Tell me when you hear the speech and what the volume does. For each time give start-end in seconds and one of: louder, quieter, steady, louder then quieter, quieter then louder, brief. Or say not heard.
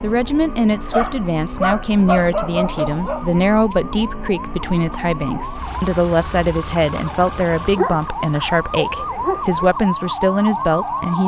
0.0-11.2 steady.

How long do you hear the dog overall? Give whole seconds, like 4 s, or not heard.
5 s.